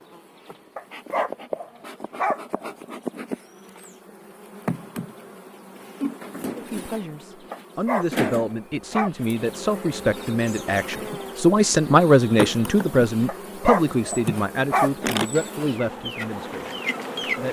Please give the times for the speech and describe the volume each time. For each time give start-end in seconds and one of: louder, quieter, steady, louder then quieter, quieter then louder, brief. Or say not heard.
6.5-16.7 louder then quieter.